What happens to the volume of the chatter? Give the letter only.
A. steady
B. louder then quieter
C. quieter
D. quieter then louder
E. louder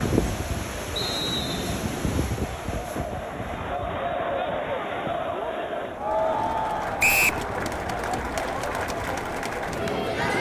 E.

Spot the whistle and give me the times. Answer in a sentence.
You can hear the whistle from 0.9 to 1.6 s and from 7.0 to 7.4 s.